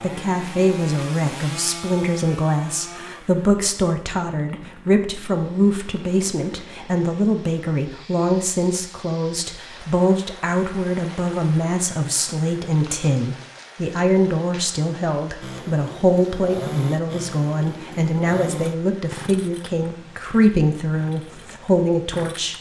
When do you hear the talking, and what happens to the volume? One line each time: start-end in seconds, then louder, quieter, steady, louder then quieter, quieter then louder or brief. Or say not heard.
0.0-22.5 steady.